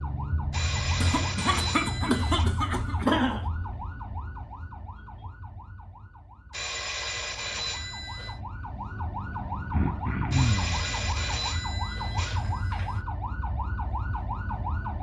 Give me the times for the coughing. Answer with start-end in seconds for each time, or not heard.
1.0-3.5, 9.7-10.8.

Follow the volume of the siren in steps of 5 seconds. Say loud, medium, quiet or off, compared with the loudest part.
loud, medium, loud.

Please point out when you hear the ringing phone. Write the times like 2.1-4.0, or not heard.
0.5-2.5, 6.5-8.4, 10.3-13.0.